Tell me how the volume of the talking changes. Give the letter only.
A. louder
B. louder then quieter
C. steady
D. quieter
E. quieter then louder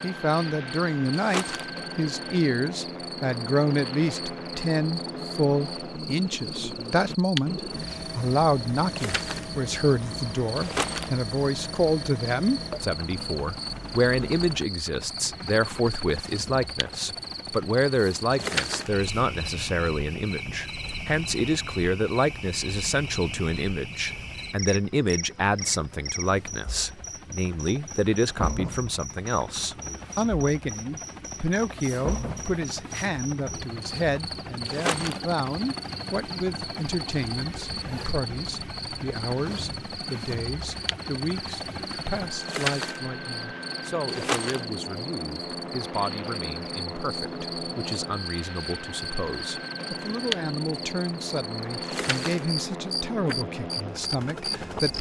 D.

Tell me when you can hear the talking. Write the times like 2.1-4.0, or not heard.
0.0-54.9.